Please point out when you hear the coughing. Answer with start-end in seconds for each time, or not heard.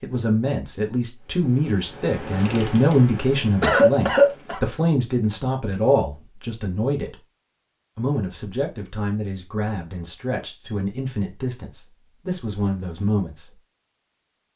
3.6-4.6.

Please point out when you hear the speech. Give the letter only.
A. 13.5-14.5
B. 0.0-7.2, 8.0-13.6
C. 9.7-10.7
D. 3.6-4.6
B.